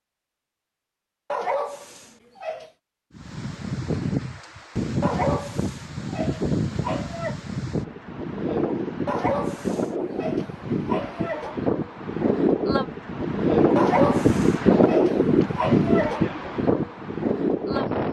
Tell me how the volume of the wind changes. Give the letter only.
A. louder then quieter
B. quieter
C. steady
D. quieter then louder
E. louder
E.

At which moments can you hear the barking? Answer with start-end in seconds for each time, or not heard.
1.3-2.7, 5.0-7.3, 9.1-11.6, 13.8-16.2.